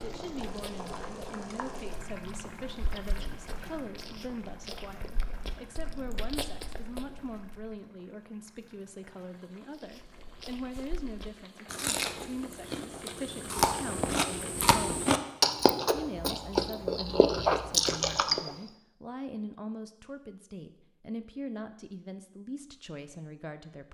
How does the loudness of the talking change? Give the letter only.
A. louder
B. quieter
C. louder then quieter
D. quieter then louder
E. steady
E.